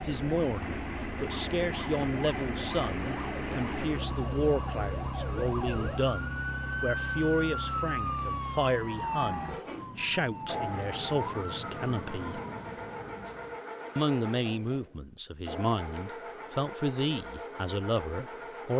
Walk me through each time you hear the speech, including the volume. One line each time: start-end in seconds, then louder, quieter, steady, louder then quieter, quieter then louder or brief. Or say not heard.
0.0-12.4 steady
13.9-18.7 steady.